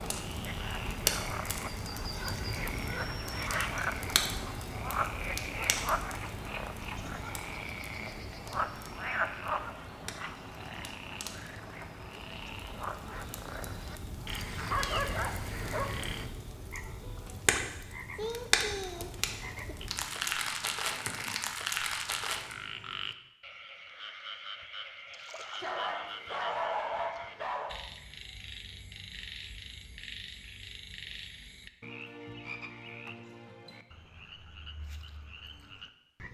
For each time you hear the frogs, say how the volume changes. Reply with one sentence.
You can hear the frogs from 0.0 to 36.2 s, getting quieter.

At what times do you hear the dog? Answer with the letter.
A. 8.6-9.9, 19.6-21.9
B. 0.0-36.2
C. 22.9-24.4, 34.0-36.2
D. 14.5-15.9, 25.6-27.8
D.